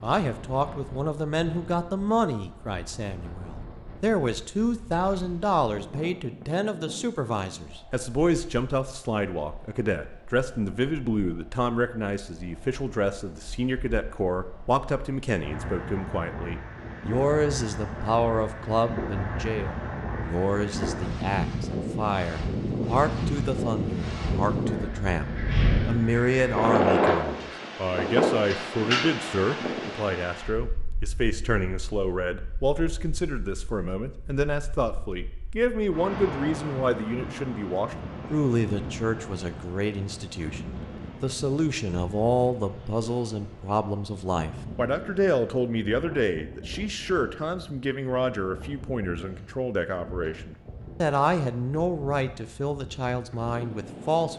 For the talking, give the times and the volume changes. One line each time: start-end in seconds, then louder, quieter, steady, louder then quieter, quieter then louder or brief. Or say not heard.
0.0-54.3 steady.